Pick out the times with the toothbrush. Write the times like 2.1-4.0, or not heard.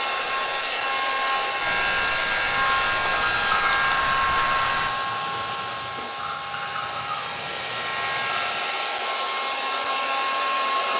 2.5-8.6.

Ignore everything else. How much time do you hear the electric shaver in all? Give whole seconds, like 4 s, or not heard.
5 s.